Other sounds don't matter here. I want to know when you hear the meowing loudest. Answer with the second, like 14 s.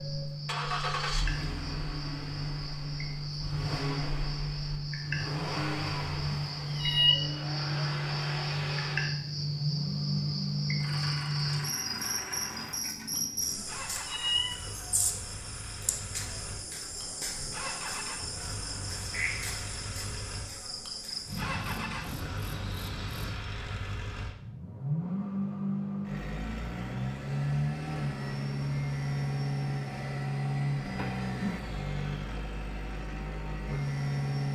7 s.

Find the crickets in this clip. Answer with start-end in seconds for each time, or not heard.
0.0-23.4.